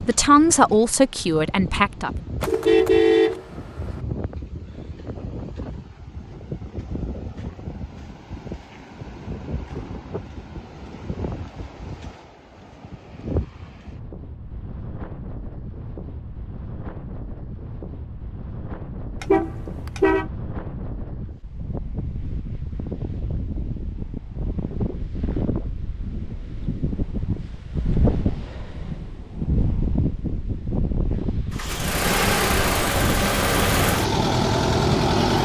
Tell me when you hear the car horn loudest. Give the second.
3 s.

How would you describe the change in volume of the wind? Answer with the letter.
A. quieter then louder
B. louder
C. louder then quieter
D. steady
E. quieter
B.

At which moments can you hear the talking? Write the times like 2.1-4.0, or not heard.
0.0-2.2.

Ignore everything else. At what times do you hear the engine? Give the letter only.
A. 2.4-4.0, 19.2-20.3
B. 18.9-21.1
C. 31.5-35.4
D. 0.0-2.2
C.